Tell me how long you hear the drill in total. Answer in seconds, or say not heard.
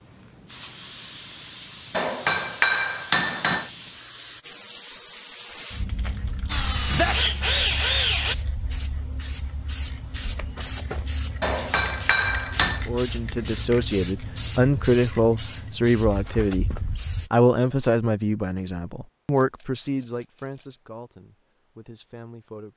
2 s.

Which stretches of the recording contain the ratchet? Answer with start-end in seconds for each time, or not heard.
not heard.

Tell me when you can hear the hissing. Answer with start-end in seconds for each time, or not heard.
0.0-17.3.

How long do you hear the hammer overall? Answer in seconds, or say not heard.
3 s.